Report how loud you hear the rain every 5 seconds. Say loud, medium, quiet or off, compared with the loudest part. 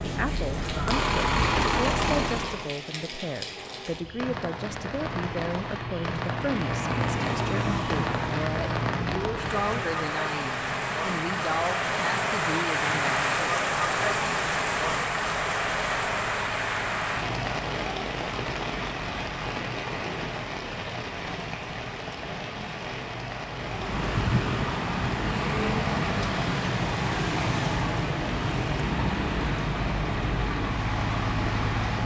medium, medium, loud, loud, medium, medium, medium.